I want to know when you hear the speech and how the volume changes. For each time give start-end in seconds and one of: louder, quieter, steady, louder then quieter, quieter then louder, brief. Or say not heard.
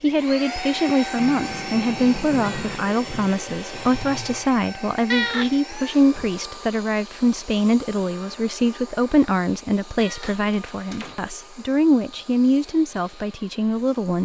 0.0-14.2 steady.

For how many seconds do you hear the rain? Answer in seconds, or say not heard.
not heard.